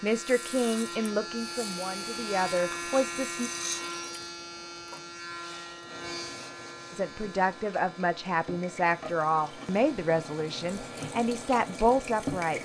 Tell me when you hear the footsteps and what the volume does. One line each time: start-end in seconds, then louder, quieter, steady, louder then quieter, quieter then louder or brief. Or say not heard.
not heard.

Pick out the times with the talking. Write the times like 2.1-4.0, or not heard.
0.0-3.5, 6.9-12.6.